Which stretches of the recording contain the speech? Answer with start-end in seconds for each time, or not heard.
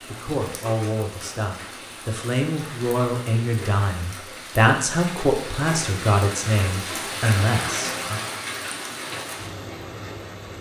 0.1-8.2.